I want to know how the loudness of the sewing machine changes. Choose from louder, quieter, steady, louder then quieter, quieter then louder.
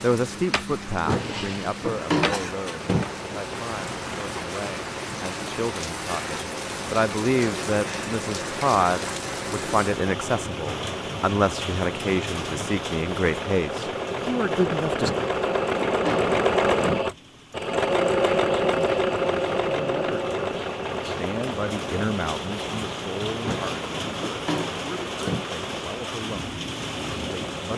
louder then quieter.